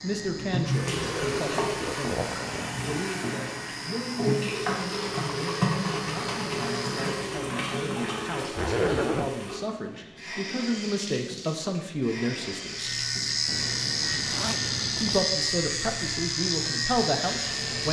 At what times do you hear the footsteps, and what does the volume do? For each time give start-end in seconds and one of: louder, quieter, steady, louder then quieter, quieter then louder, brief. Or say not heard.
not heard.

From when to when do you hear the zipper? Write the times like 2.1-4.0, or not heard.
0.9-2.7, 8.6-9.3, 13.4-15.3.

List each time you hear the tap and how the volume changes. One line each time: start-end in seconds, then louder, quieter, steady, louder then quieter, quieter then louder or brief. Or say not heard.
0.0-17.8 quieter.